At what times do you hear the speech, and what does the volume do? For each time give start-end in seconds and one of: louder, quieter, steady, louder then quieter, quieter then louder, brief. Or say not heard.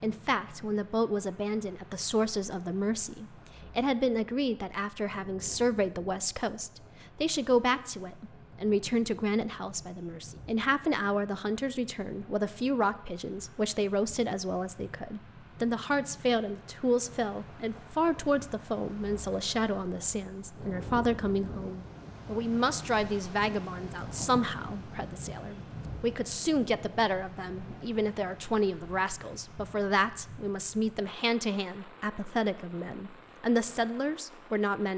0.0-34.9 steady.